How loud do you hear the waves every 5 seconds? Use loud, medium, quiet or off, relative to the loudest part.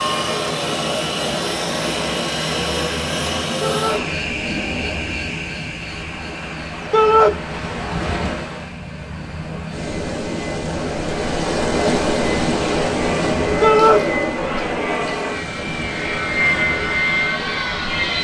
medium, medium, loud, medium.